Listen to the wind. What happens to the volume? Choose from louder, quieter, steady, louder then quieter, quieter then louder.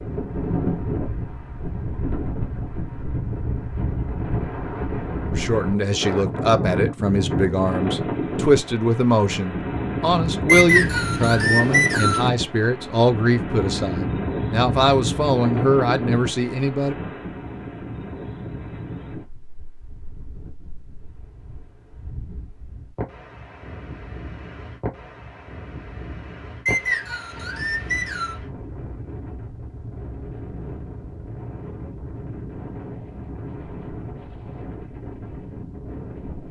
quieter.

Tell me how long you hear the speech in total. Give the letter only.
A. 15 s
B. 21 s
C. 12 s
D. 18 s
C.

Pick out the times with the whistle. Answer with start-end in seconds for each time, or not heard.
10.4-12.3, 26.6-28.4.